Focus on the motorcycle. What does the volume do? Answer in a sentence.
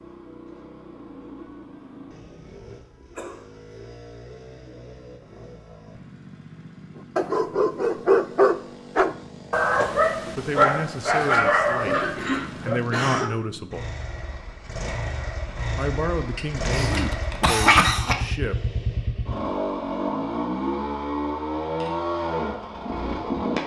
The loudness of the motorcycle goes up.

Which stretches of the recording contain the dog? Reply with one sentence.
You can hear the dog from 7.2 to 12.8 s.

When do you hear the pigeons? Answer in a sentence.
The pigeons can't be heard in this clip.